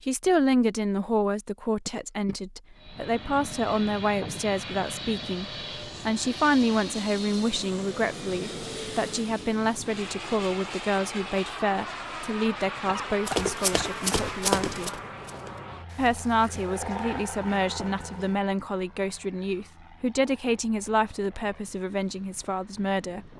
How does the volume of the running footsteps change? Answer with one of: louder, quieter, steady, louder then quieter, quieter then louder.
quieter.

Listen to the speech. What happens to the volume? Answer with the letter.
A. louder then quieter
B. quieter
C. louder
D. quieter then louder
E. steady
E.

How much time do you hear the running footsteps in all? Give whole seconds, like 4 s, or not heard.
5 s.